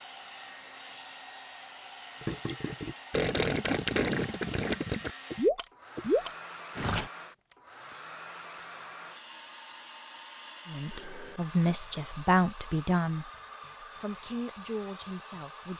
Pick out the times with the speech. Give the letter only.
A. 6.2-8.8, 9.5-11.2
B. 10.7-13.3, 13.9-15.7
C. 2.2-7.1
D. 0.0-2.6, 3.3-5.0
B.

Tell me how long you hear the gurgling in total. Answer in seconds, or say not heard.
5 s.